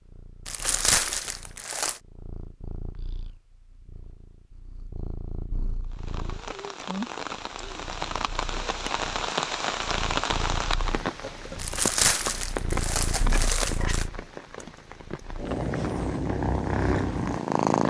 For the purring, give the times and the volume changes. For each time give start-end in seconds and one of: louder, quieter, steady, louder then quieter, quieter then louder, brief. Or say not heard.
0.0-17.8 louder.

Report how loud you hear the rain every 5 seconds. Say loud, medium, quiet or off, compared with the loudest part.
off, loud, loud, medium.